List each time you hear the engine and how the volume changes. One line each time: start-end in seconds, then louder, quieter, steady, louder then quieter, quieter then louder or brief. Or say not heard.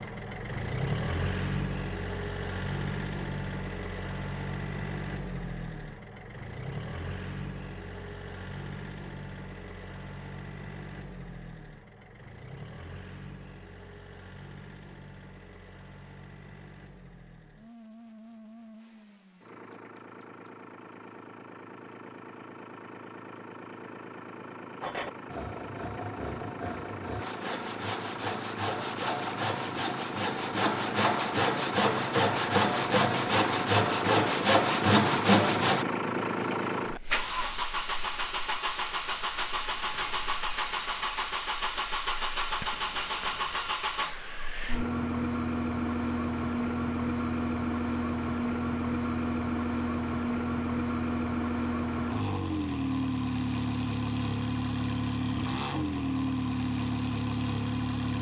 0.0-58.1 quieter then louder.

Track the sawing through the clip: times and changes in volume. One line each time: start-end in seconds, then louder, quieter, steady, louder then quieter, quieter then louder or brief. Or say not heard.
24.8-35.9 louder.